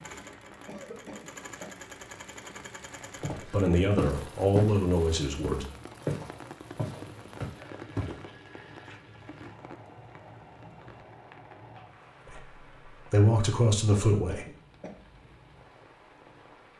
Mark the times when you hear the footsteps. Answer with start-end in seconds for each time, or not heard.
3.2-4.8, 5.4-8.3.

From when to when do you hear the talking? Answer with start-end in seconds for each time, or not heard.
3.4-5.7, 12.2-14.4.